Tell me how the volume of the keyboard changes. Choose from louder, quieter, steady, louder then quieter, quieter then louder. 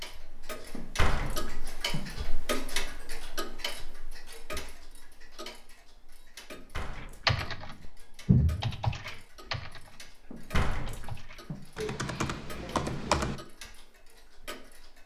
quieter then louder.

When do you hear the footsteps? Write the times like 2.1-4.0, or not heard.
not heard.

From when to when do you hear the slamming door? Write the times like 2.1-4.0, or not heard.
0.8-2.3, 6.5-7.3, 10.3-11.6.